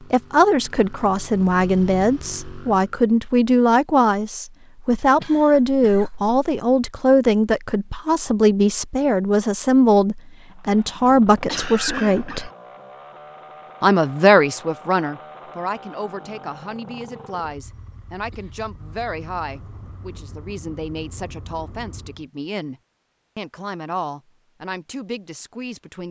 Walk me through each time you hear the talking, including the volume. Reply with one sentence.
You can hear the talking from 0.1 to 12.5 s, at a steady volume; and from 13.8 to 26.0 s, getting quieter.